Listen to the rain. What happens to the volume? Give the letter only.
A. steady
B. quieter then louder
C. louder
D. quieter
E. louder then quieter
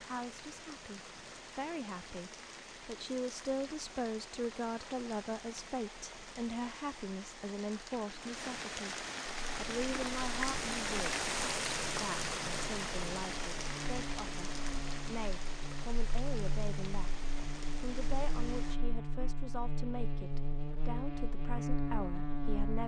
E.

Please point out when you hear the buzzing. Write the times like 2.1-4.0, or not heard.
9.3-22.8.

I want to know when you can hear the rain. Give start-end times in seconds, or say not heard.
0.0-18.8.